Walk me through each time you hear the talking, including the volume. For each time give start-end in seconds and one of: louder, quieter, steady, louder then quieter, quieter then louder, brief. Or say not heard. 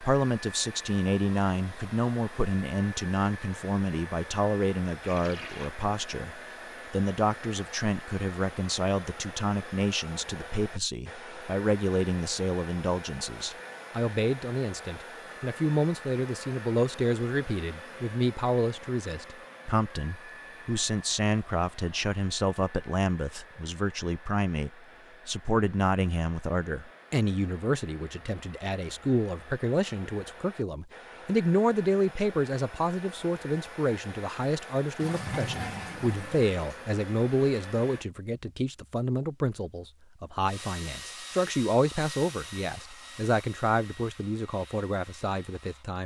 0.0-46.0 steady.